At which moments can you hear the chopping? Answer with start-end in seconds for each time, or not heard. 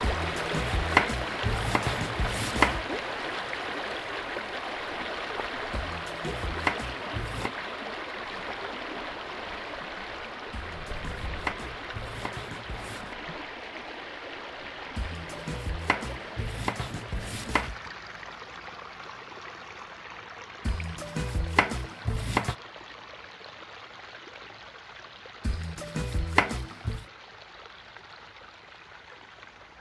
0.0-3.0, 5.7-7.5, 10.5-13.2, 14.9-17.8, 20.6-22.6, 25.4-27.1.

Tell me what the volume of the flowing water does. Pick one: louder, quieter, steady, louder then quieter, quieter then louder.
quieter.